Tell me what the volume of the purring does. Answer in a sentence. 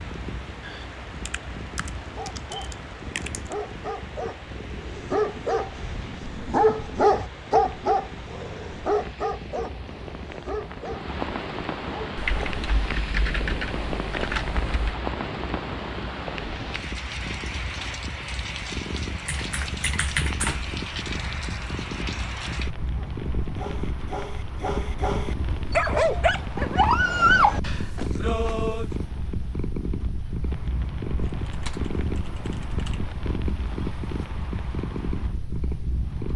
The loudness of the purring goes up.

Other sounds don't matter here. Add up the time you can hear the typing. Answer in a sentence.
You can hear the typing for 9 seconds altogether.